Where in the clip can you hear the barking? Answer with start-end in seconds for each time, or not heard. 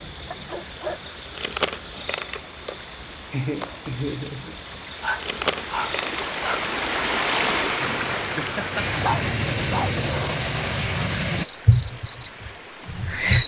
0.3-1.1, 5.0-6.7, 9.0-10.0.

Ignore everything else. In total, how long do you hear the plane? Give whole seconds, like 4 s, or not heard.
4 s.